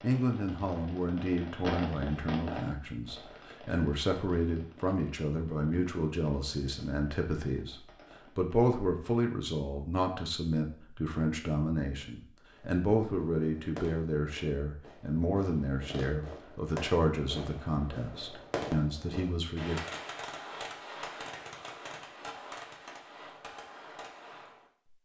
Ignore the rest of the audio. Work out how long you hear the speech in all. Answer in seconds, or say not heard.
20 s.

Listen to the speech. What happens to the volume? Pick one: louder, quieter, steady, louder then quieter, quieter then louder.
steady.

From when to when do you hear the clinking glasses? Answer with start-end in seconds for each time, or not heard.
not heard.